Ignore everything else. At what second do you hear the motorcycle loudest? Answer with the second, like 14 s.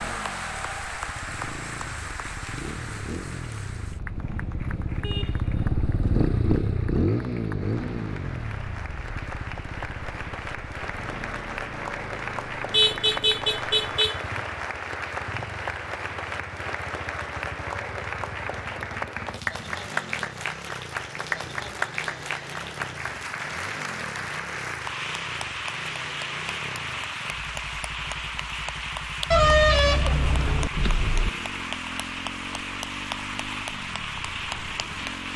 7 s.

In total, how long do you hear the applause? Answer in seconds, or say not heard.
35 s.